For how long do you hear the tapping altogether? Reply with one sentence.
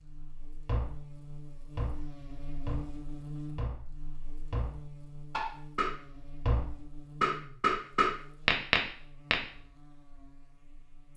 You can hear the tapping for 9 seconds altogether.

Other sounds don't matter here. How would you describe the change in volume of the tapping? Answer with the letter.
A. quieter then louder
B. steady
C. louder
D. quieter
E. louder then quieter
C.